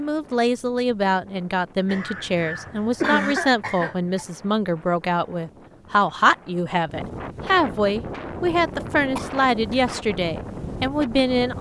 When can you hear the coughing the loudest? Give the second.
3 s.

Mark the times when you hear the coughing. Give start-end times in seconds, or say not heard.
1.9-4.2, 9.2-9.8.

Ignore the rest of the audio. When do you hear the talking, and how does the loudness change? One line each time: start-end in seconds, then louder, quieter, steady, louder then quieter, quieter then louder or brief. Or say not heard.
0.0-11.5 steady.